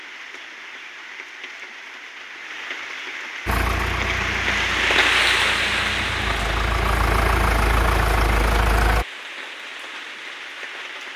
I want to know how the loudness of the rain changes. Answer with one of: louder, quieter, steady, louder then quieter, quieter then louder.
louder then quieter.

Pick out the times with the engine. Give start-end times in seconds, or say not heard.
3.5-9.1.